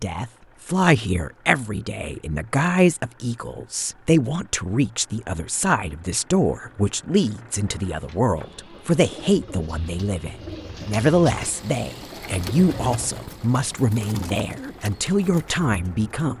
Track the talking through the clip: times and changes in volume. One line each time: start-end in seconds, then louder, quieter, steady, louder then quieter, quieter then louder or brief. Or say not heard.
0.0-16.3 steady.